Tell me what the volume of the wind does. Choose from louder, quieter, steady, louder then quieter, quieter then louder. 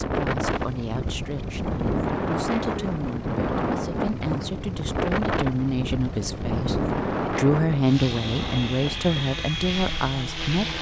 quieter.